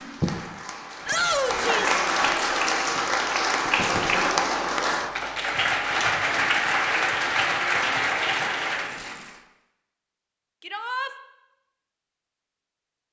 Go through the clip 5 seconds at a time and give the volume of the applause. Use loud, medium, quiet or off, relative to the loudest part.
loud, loud, off.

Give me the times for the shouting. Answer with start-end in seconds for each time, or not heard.
1.1-1.9, 10.6-11.1.